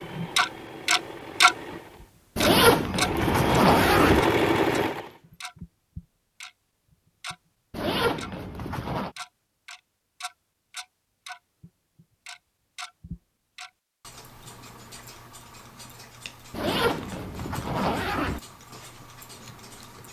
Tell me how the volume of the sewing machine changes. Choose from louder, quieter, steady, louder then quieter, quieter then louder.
louder.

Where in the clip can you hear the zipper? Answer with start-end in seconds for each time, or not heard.
2.4-4.2, 7.7-9.1, 16.5-18.4.